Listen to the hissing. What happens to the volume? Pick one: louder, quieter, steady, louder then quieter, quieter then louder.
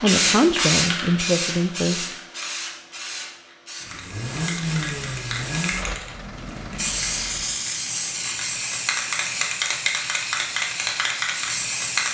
quieter then louder.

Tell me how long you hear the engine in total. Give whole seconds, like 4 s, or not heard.
4 s.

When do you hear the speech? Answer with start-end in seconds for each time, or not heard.
0.0-2.0.